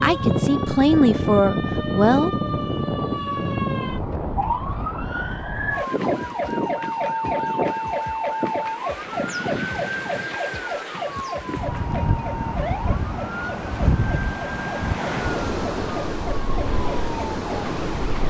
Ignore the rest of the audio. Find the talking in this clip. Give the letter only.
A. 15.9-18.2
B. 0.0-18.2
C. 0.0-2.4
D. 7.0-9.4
C.